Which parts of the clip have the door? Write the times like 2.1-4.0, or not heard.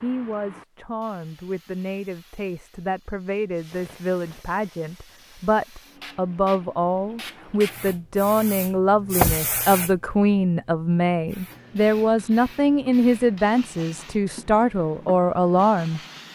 8.8-9.4.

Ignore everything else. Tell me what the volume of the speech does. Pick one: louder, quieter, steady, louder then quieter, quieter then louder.
louder.